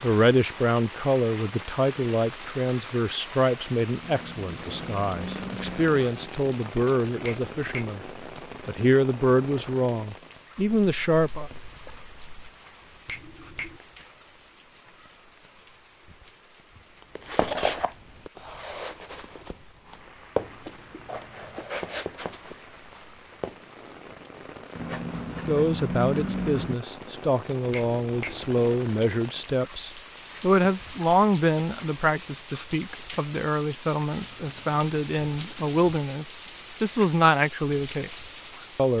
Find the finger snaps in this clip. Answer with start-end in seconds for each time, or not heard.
7.2-8.0, 13.1-13.8, 27.7-28.4.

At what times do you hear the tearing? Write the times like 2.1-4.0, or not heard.
not heard.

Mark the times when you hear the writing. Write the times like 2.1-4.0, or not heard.
4.0-6.0, 10.8-12.5, 20.4-21.8, 24.8-26.8, 34.1-36.0.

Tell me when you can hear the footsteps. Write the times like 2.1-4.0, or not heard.
17.0-23.6.